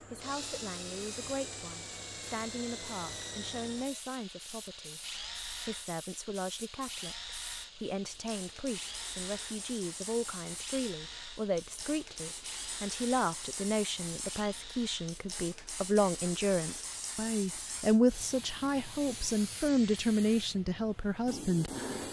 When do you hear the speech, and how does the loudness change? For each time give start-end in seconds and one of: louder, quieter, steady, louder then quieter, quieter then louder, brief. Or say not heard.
0.1-21.9 louder.